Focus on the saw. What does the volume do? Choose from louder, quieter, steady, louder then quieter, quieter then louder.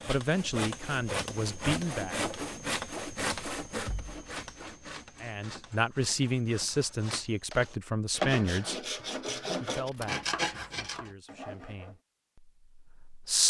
quieter then louder.